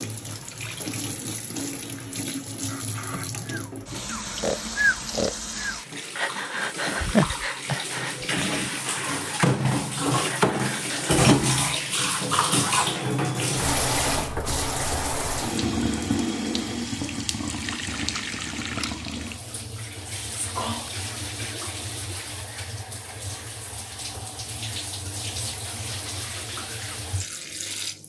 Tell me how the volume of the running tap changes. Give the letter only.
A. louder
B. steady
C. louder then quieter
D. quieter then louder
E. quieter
C.